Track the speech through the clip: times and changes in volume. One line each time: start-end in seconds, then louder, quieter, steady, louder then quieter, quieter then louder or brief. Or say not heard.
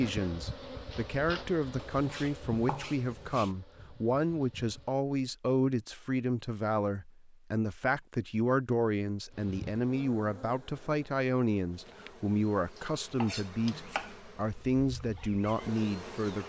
0.0-16.4 steady.